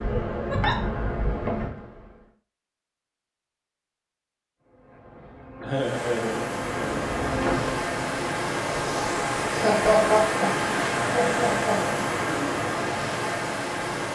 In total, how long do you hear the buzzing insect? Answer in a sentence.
You can hear the buzzing insect for 6 seconds altogether.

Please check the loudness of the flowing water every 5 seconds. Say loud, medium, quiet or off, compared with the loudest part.
off, loud, loud.